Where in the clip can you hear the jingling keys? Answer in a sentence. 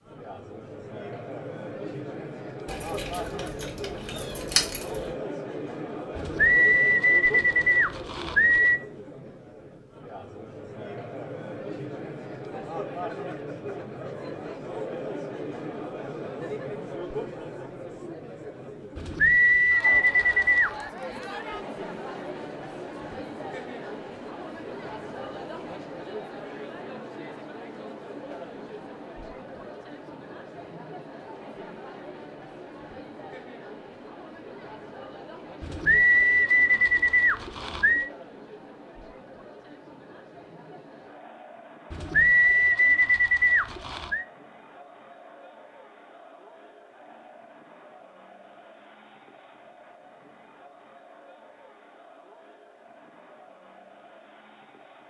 The jingling keys can be heard from 2.6 to 5.2 s.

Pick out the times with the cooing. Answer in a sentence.
The cooing can be heard from 6.2 to 8.8 s, from 18.9 to 20.7 s, from 35.6 to 38.1 s and from 41.9 to 44.2 s.